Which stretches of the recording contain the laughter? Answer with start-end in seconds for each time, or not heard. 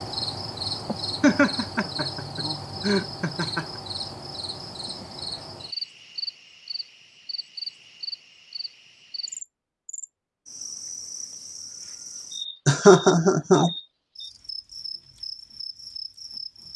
1.2-3.6, 12.7-13.7.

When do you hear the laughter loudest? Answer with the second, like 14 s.
13 s.